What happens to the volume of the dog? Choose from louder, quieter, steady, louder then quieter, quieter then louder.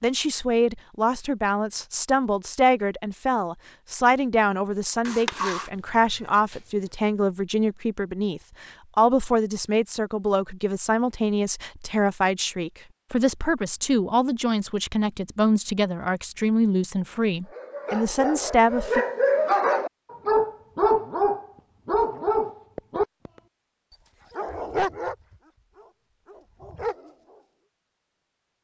louder then quieter.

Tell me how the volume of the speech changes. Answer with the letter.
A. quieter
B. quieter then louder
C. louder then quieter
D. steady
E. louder
D.